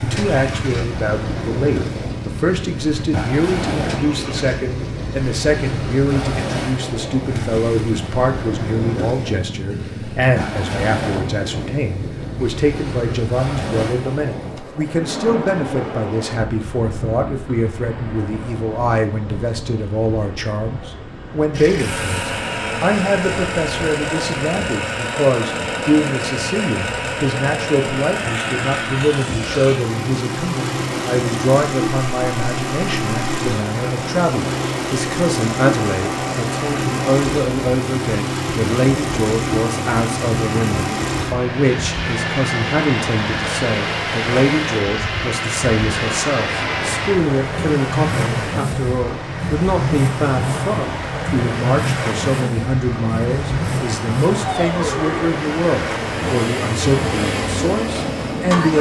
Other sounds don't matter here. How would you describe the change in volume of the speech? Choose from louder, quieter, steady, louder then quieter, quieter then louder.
steady.